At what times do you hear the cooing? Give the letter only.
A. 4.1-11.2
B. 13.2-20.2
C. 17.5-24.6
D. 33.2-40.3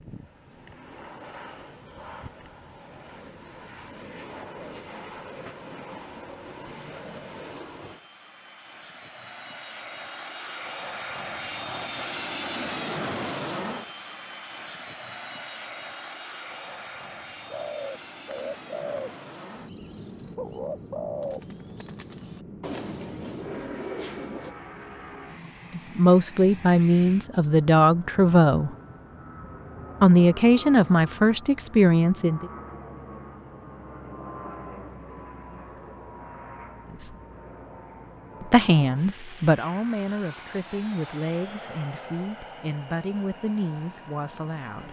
C.